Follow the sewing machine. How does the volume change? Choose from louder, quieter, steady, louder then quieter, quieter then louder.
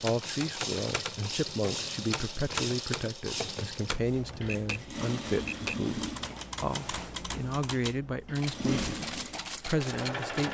quieter then louder.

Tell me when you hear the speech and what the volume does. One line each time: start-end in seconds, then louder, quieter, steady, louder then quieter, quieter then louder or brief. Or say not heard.
0.0-10.4 steady.